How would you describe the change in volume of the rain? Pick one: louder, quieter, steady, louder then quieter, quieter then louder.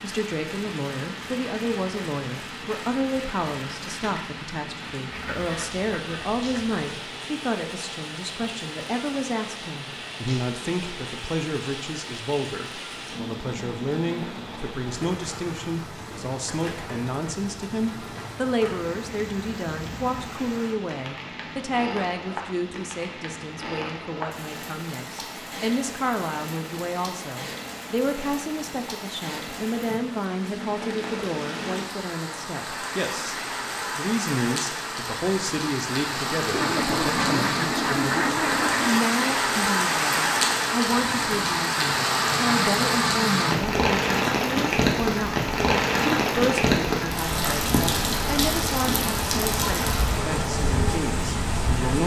louder.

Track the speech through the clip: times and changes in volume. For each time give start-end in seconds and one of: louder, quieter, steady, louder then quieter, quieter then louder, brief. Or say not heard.
0.0-52.0 steady.